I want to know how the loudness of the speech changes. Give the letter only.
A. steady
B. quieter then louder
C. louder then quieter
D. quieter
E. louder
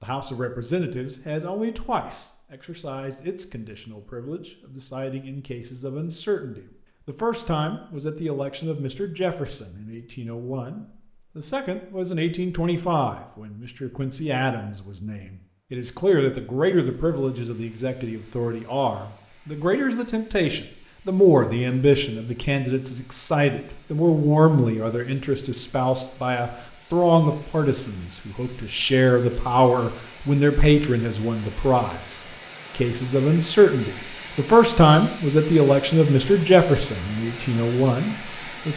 E.